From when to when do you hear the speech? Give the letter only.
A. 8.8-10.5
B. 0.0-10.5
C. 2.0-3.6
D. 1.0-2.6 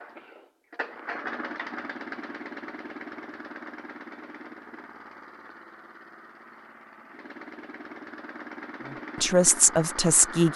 A.